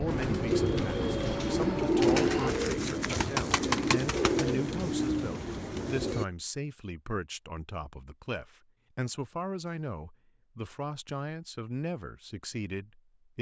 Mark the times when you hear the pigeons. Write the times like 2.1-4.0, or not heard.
0.1-6.2.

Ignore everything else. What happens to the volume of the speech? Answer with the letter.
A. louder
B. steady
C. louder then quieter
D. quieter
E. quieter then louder
B.